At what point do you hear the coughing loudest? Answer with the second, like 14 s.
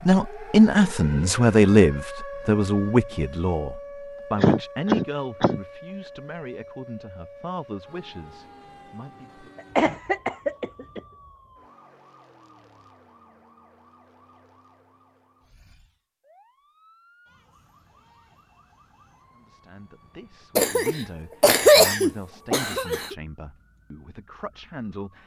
22 s.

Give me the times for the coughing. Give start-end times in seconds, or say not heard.
4.3-5.6, 9.8-11.0, 20.6-23.1.